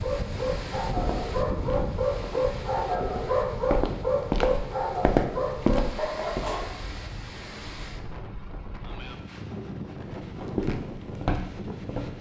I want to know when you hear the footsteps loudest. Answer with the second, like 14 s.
5 s.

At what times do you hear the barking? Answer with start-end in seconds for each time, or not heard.
0.0-6.7.